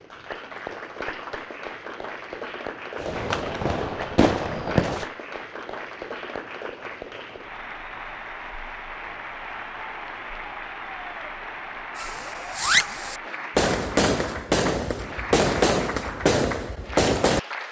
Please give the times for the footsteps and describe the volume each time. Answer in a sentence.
You can't hear the footsteps here.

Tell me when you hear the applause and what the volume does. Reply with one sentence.
You can hear the applause from 0.0 to 17.6 s, at a steady volume.